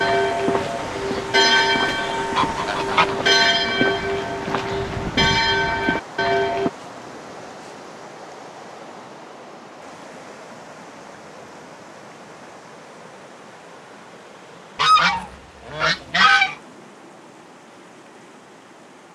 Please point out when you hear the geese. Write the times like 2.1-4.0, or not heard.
1.6-3.1, 14.8-16.6.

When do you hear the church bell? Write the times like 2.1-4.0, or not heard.
0.0-6.7.